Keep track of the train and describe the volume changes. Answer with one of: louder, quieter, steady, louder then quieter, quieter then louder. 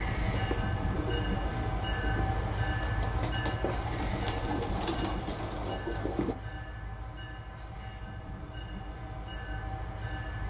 quieter.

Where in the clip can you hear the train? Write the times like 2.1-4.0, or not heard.
0.0-10.4.